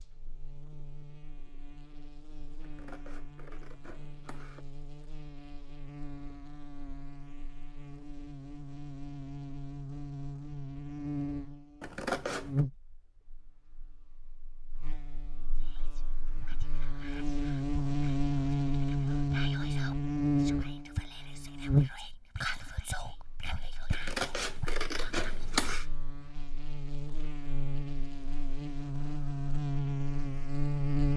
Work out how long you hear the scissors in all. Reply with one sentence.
The scissors can be heard for 5 seconds in total.